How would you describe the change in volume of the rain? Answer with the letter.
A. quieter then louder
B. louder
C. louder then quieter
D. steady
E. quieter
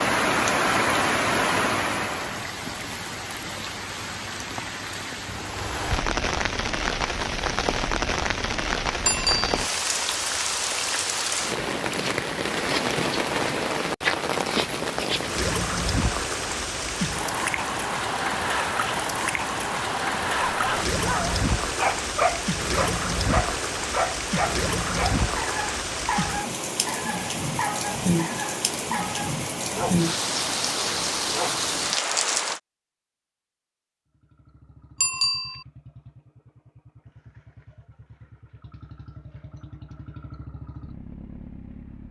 D.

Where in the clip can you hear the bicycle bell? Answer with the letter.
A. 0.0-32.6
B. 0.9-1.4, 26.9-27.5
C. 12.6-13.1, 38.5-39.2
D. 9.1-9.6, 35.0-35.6
D.